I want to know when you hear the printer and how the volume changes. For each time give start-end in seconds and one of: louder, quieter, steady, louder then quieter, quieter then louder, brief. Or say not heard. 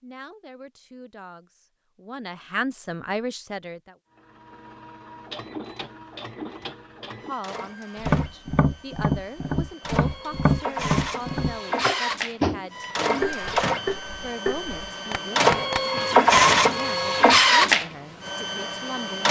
4.2-19.2 louder.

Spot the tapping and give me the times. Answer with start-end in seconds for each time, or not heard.
8.0-16.4.